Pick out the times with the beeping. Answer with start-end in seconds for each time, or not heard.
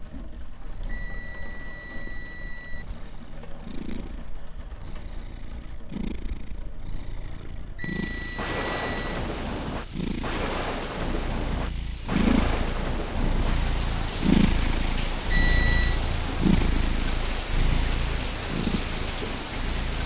0.8-2.9, 7.8-9.0, 15.3-16.0.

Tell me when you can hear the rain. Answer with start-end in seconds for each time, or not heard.
0.0-20.0.